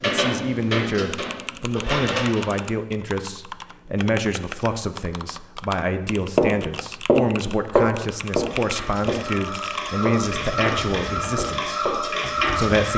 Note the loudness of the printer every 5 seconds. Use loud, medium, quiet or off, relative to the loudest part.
loud, medium, loud.